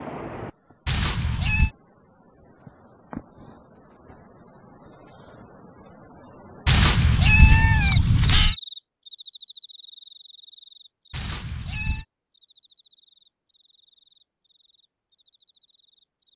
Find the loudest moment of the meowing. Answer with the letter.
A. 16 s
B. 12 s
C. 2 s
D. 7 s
D.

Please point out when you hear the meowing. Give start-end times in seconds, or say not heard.
0.8-1.7, 6.7-8.6, 11.1-12.1.